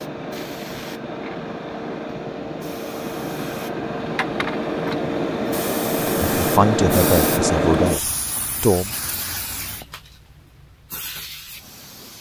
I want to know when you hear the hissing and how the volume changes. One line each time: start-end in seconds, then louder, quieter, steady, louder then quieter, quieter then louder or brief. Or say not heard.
0.0-12.1 louder then quieter.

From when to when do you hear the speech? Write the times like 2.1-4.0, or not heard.
6.3-8.9.